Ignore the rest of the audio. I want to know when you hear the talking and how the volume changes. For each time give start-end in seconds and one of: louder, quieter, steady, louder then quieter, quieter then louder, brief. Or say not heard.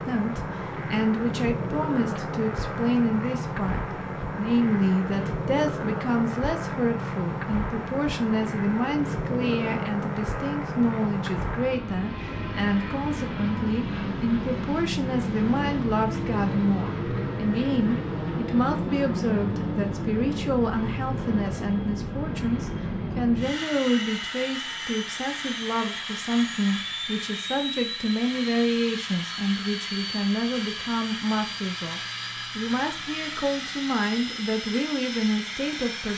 0.0-36.1 steady.